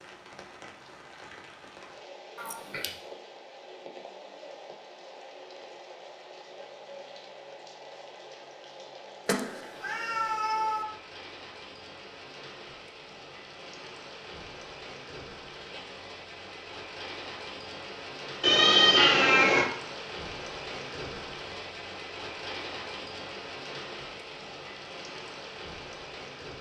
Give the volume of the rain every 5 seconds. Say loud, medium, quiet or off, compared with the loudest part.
medium, medium, medium, loud, loud, loud.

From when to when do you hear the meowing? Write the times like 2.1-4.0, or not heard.
2.4-2.9, 9.2-10.8, 18.4-19.7.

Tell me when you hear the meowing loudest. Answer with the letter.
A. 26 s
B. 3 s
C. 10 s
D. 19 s
D.